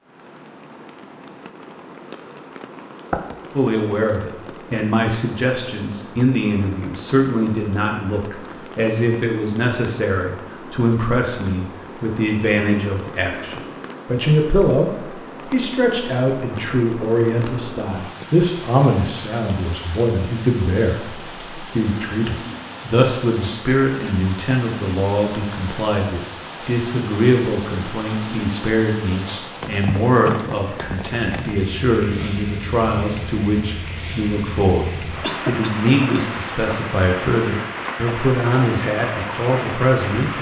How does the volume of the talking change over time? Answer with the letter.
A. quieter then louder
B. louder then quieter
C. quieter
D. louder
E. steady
E.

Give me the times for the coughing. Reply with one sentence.
You can hear the coughing from 35.2 to 35.9 s.